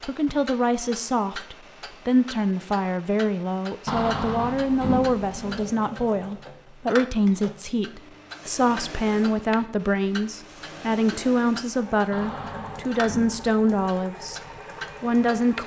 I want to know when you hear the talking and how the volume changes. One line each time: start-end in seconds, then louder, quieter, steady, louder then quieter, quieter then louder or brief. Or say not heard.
0.0-14.4 steady
15.0-15.6 brief.